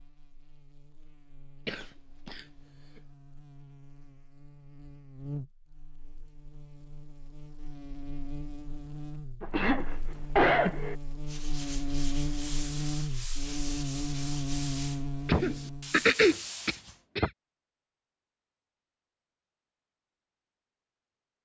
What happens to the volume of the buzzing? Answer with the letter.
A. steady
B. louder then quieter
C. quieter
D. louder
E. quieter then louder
D.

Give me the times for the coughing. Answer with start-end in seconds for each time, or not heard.
1.6-3.0, 9.4-10.9, 15.2-17.3.